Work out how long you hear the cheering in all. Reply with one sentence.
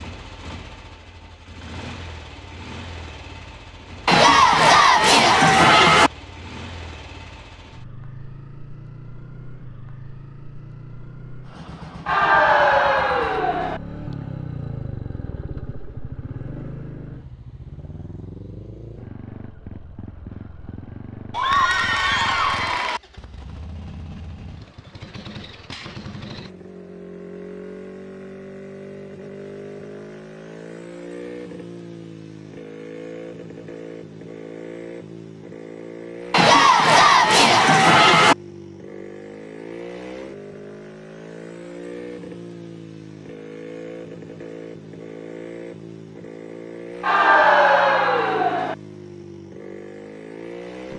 You can hear the cheering for 9 seconds altogether.